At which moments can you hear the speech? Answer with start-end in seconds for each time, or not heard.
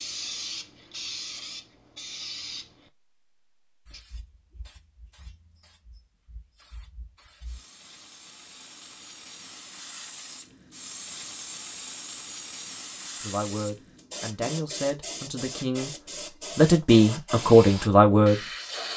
13.2-18.9.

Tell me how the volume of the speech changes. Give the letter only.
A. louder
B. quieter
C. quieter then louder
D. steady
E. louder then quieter
A.